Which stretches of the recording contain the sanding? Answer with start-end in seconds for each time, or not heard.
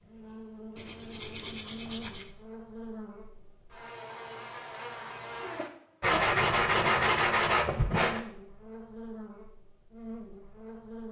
0.8-2.3, 6.0-8.2.